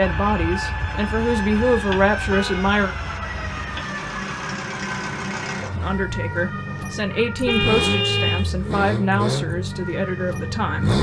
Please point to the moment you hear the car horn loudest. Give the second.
8 s.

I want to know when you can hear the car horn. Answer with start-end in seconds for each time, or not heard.
2.1-2.6, 7.5-8.4.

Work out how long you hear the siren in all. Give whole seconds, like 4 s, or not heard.
11 s.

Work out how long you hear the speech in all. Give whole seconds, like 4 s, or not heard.
8 s.